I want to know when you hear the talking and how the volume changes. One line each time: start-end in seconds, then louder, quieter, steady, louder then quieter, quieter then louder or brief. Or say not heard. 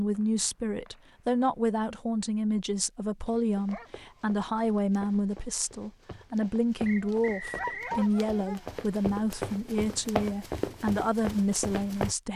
0.0-12.3 steady.